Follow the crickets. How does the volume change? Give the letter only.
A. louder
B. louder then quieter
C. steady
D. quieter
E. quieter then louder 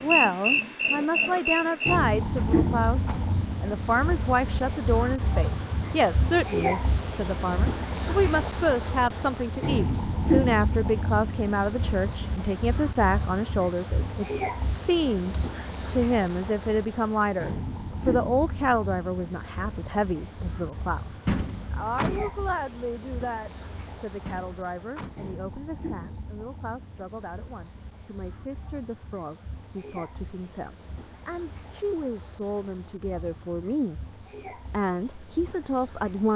D.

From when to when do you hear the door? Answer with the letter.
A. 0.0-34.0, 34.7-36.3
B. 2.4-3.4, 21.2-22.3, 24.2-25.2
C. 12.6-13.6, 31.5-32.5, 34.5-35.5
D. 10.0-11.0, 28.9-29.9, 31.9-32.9
B.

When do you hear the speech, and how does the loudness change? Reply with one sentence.
The speech can be heard from 0.0 to 34.0 s, getting quieter; and briefly from 34.7 to 36.3 s.